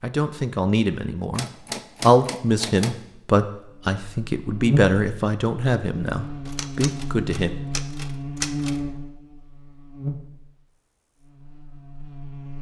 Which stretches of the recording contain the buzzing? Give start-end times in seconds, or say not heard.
3.8-12.5.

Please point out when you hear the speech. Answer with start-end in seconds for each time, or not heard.
0.0-7.5.